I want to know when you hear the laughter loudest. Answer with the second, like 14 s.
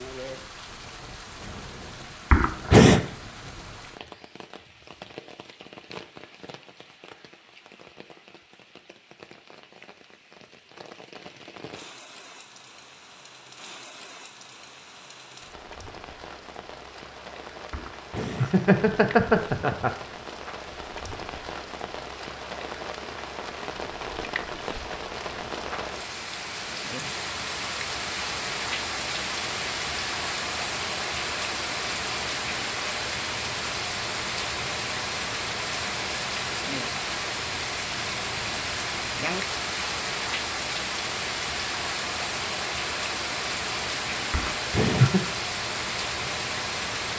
3 s.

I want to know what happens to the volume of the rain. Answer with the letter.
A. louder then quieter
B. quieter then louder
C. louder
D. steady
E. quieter
C.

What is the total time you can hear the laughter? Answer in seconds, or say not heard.
4 s.